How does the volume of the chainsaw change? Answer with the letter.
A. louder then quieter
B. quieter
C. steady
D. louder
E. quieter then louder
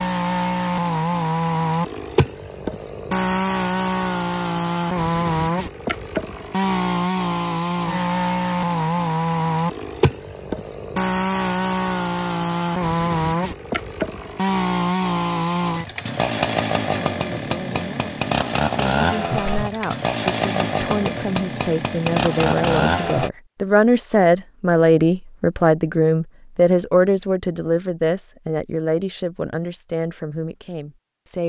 C.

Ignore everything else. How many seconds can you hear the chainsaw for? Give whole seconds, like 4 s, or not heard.
23 s.